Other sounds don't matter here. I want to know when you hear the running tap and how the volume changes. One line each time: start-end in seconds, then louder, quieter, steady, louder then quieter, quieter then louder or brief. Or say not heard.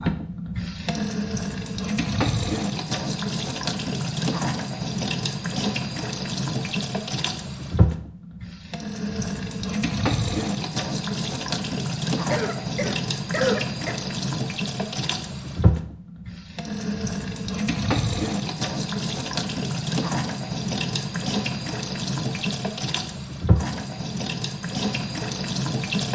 0.0-26.0 steady.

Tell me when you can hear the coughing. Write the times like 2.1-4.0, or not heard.
12.3-13.9.